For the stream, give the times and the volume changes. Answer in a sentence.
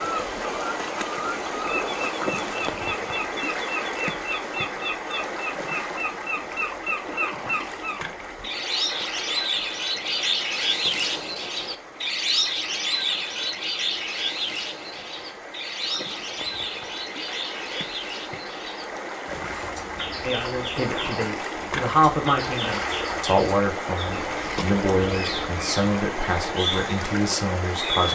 The stream can be heard from 0.0 to 28.0 s, getting quieter then louder.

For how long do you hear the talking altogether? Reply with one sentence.
The talking can be heard for 8 seconds in total.